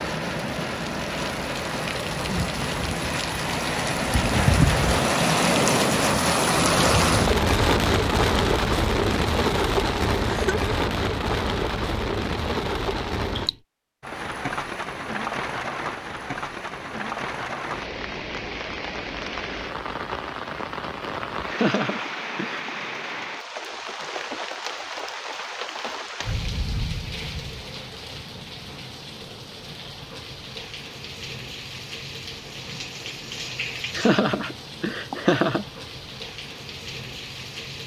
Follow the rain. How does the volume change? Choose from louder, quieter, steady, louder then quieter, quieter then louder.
quieter.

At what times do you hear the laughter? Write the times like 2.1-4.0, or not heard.
10.2-10.8, 21.5-22.9, 34.0-35.6.